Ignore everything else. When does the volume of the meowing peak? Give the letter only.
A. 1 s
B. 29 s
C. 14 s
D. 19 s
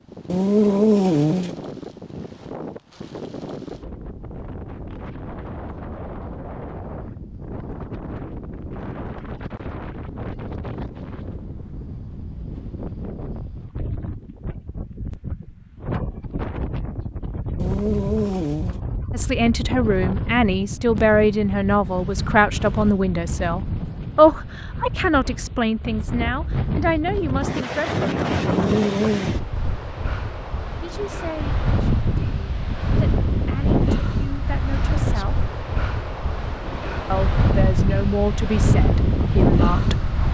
A.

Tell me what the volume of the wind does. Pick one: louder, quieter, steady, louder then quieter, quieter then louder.
louder.